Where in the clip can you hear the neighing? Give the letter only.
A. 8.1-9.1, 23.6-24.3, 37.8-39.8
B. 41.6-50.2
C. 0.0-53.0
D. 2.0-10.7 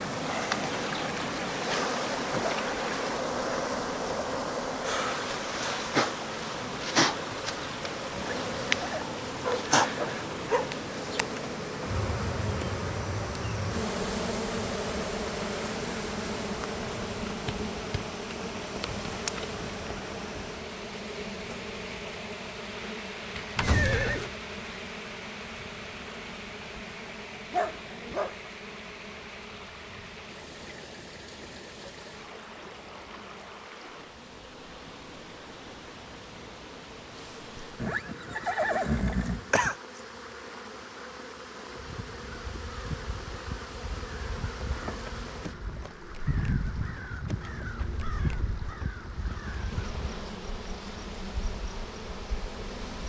A.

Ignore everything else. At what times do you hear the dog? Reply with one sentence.
The dog can be heard from 9.0 to 10.7 s and from 27.5 to 28.4 s.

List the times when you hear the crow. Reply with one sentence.
You can hear the crow from 41.6 to 50.2 s.